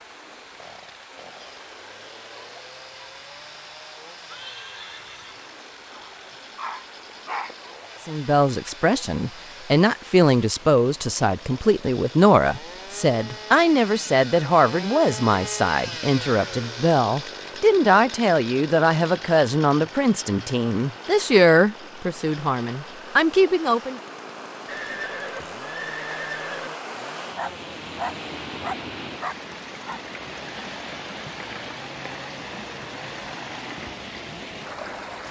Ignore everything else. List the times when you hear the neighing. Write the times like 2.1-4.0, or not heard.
4.2-5.5, 24.6-26.7.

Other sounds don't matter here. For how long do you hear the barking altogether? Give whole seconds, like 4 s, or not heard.
4 s.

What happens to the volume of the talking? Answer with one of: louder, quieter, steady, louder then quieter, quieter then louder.
steady.